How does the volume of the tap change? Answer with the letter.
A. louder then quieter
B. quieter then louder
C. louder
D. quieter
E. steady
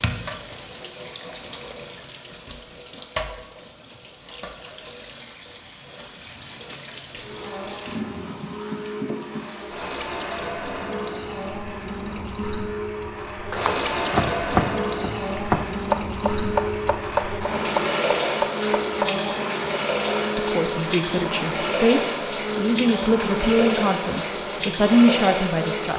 C.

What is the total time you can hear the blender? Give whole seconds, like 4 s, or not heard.
19 s.